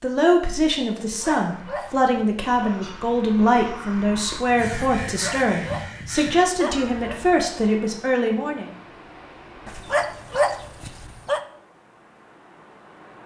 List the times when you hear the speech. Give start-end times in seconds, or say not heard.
0.0-8.7.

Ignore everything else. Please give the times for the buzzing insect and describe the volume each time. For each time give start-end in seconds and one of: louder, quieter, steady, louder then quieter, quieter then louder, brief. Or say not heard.
not heard.